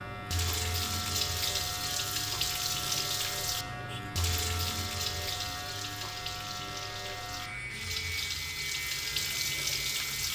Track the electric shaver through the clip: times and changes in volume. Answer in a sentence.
You can hear the electric shaver from 0.0 to 10.3 s, at a steady volume.